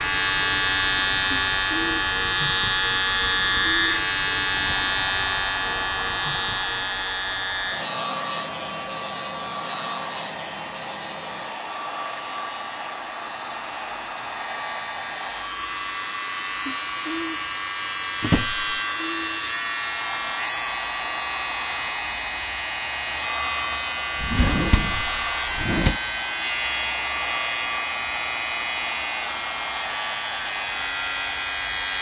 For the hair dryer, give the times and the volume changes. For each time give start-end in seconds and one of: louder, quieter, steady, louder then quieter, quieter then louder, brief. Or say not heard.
0.0-31.9 steady.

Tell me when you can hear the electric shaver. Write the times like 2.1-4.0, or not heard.
0.0-31.9.